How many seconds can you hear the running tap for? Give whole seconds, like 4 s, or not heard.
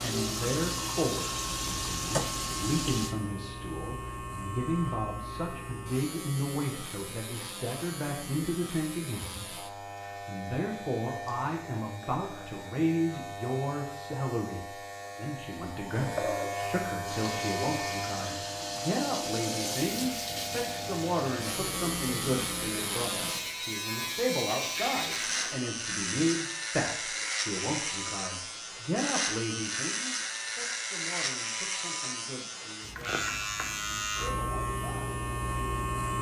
12 s.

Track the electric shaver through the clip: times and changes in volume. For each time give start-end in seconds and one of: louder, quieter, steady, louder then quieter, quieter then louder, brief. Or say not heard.
0.1-36.1 louder.